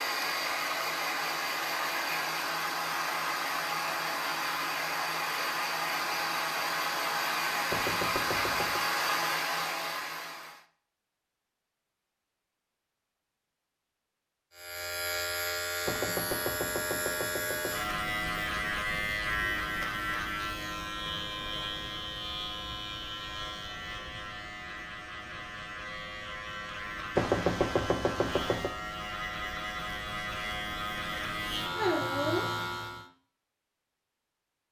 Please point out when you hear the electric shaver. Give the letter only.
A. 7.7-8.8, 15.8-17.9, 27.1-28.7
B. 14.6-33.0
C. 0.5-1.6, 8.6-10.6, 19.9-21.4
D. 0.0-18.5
B.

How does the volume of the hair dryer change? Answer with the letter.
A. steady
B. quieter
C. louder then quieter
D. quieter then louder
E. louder
A.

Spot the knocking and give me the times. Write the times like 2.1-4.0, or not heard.
7.7-8.8, 15.8-17.9, 27.1-28.7.